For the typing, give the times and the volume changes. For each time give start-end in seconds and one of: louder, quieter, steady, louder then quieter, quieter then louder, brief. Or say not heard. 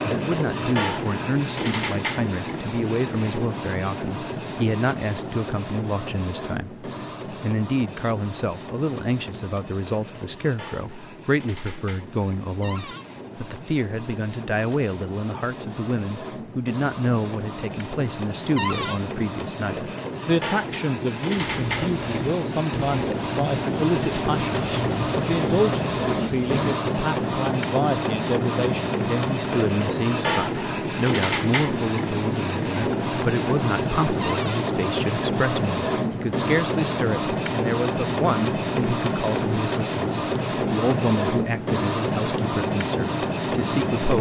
not heard.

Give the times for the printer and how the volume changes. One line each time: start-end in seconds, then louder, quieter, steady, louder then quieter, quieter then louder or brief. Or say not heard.
0.0-44.1 quieter then louder.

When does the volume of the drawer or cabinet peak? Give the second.
19 s.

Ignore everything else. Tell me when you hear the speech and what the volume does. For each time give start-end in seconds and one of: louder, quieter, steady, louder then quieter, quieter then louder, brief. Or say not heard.
0.0-44.1 steady.